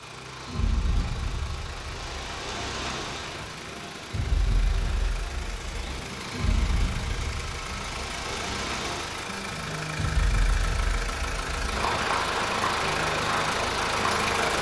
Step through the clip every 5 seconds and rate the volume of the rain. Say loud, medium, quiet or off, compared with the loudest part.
medium, medium, loud.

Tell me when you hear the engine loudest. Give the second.
14 s.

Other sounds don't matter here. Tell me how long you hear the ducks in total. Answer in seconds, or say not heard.
not heard.